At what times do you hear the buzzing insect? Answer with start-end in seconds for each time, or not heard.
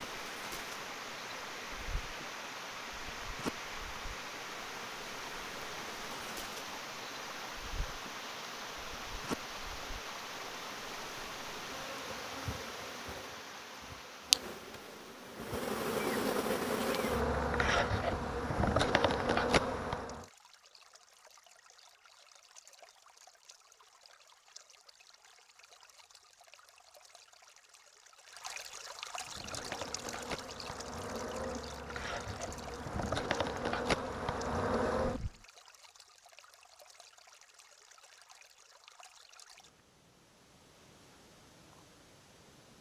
0.0-20.2, 29.1-35.3.